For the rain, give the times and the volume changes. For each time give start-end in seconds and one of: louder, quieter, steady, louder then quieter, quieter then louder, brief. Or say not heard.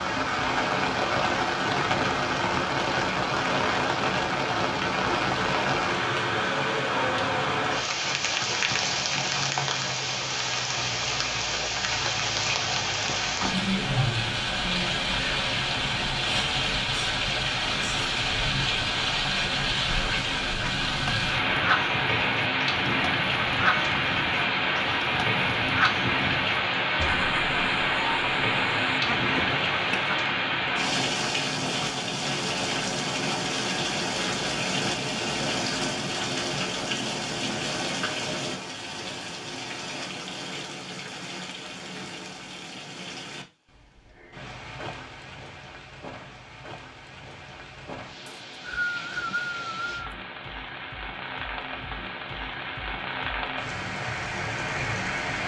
0.0-55.4 quieter.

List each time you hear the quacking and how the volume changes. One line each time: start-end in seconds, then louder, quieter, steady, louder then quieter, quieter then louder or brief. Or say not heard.
19.7-30.2 steady.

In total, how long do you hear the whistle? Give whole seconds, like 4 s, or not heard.
2 s.